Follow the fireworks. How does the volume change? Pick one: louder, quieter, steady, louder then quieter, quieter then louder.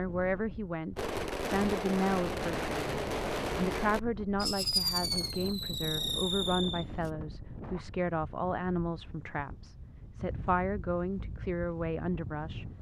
steady.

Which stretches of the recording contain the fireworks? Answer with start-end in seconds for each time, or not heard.
0.9-7.1.